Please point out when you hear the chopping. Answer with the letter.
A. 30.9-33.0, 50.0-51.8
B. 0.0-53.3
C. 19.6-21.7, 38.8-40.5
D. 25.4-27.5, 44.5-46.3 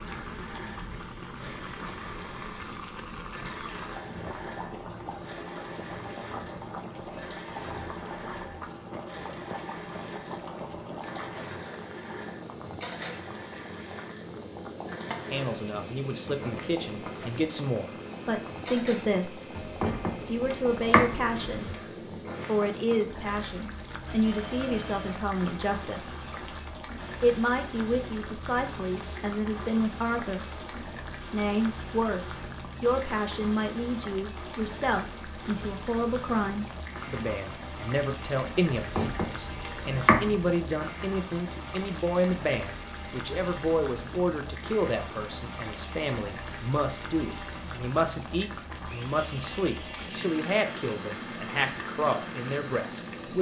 C.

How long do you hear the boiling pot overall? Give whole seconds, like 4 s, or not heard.
53 s.